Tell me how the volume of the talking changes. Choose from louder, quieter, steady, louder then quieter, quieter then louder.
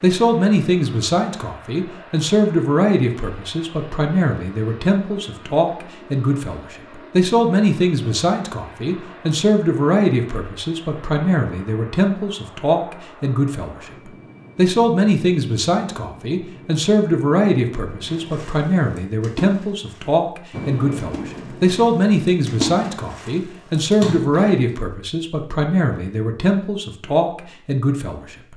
steady.